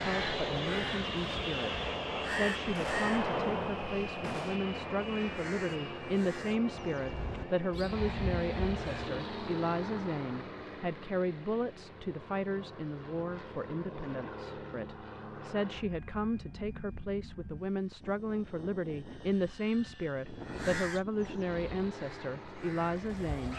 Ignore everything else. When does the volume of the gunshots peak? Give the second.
3 s.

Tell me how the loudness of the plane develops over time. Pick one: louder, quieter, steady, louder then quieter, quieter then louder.
quieter.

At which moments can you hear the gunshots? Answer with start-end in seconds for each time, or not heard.
2.6-4.6.